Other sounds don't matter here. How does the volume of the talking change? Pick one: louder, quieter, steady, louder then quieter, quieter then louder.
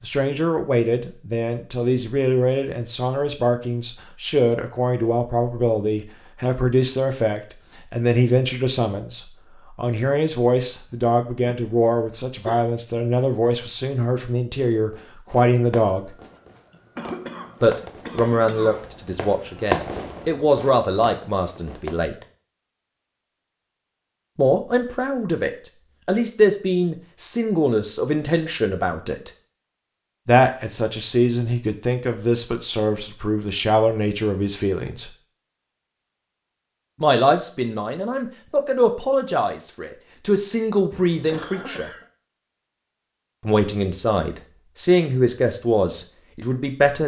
steady.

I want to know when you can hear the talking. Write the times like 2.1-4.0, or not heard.
0.0-16.1, 17.6-22.2, 24.4-29.3, 30.2-35.1, 37.0-41.9, 43.4-47.0.